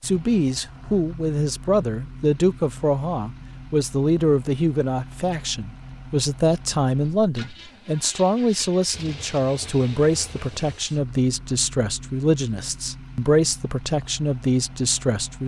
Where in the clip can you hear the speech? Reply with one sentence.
The speech can be heard from 0.0 to 15.4 s.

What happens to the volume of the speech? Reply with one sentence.
The loudness of the speech stays about the same.